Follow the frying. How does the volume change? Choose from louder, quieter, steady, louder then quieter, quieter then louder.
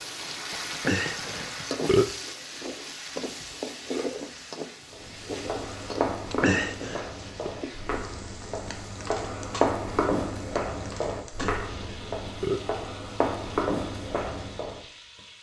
quieter.